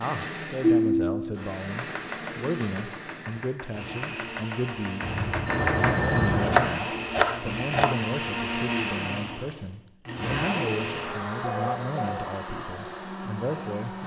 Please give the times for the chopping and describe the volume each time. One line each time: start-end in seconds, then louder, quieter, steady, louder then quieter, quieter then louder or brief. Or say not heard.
1.7-8.0 louder.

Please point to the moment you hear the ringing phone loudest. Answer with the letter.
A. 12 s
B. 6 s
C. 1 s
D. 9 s
C.